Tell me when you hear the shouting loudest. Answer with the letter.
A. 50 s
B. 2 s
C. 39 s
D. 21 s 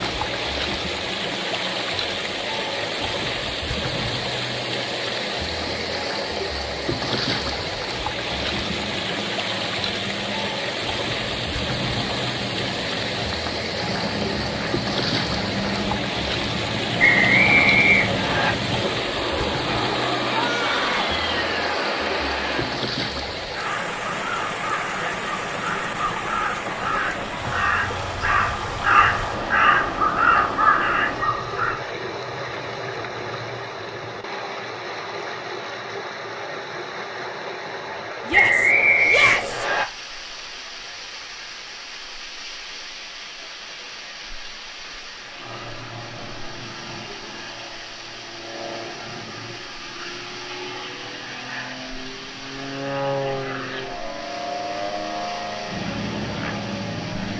C.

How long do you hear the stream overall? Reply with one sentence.
The stream can be heard for 57 seconds in total.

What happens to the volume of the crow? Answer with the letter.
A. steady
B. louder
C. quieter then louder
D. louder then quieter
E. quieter
B.